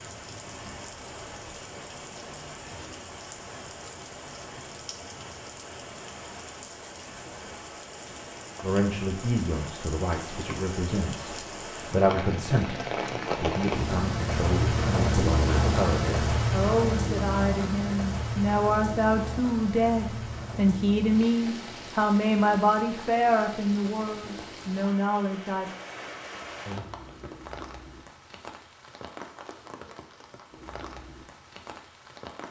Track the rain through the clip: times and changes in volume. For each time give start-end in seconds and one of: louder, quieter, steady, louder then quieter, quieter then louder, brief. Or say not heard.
0.0-32.4 louder then quieter.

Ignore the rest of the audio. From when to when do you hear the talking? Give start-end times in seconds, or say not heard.
8.6-25.7.